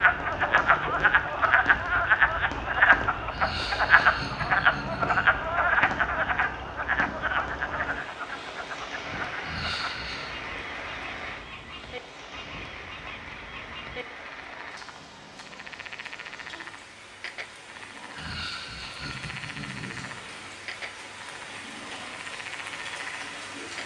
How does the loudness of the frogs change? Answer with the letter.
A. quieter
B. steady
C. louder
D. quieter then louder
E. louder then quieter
A.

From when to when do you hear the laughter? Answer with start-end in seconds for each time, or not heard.
3.3-5.2, 9.4-10.3, 18.1-20.1.